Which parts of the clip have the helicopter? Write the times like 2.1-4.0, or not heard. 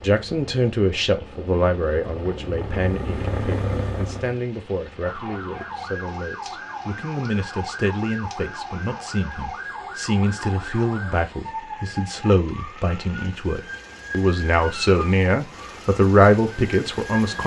0.0-4.4.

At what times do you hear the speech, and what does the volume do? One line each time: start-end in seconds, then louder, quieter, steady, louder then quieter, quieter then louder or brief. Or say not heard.
0.0-17.4 quieter then louder.